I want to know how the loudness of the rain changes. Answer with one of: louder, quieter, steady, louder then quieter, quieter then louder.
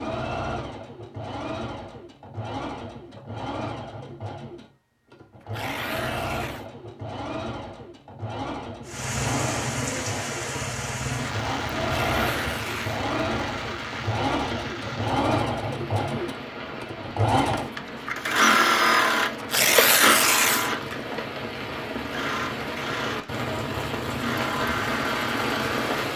quieter then louder.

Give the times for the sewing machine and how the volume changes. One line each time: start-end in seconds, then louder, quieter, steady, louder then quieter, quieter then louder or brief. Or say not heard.
0.0-26.1 louder then quieter.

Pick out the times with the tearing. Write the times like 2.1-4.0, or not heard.
5.4-6.7, 11.9-12.9, 19.4-20.7.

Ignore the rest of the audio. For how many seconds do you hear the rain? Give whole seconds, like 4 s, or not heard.
17 s.